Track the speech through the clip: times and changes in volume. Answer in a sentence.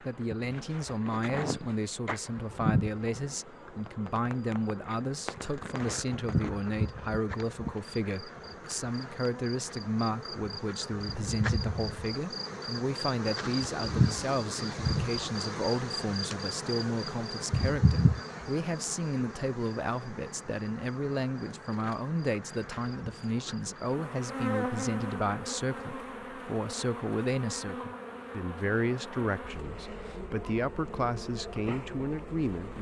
The speech can be heard from 0.0 to 32.7 s, at a steady volume.